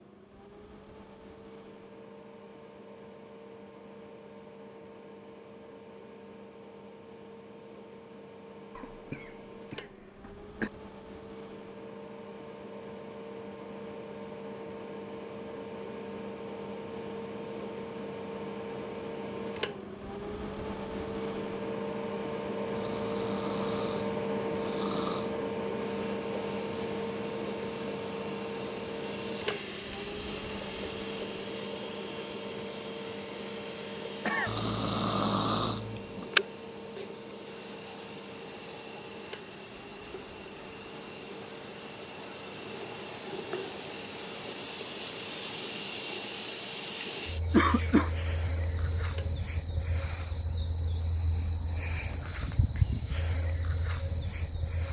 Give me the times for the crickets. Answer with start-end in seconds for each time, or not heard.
25.8-54.8.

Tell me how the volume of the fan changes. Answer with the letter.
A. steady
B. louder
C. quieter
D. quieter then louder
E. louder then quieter
E.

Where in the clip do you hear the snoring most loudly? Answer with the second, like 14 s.
35 s.